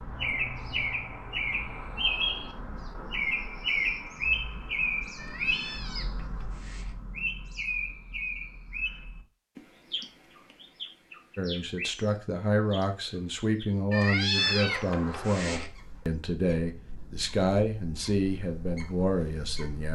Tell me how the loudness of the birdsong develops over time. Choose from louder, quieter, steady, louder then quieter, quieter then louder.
quieter.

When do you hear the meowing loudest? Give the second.
14 s.